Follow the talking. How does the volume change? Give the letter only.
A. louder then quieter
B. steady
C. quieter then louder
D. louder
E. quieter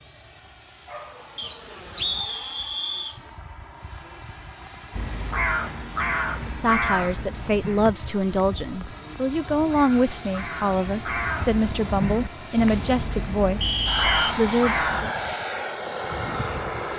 B.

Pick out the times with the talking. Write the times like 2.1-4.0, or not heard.
6.5-15.1.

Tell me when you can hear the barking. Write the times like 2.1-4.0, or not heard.
0.8-1.7.